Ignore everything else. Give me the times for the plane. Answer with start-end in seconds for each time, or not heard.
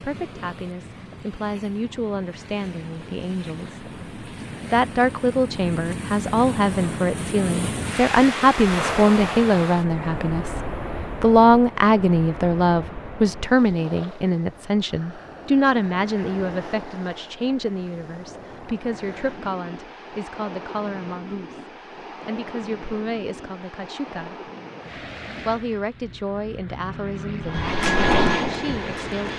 26.8-29.3.